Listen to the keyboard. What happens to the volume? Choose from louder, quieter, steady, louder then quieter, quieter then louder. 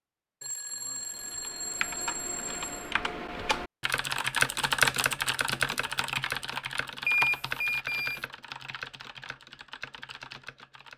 louder then quieter.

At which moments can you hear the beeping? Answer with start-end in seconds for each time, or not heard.
0.4-2.9, 7.0-8.2.